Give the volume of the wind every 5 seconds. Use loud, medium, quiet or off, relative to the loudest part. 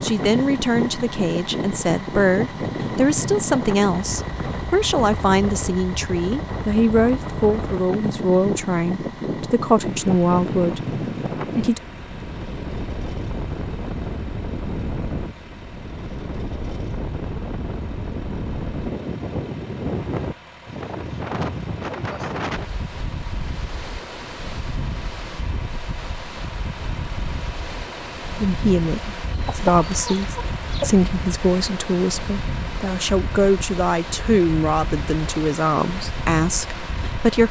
loud, loud, loud, loud, loud, medium, medium, medium.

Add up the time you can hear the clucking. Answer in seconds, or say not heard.
2 s.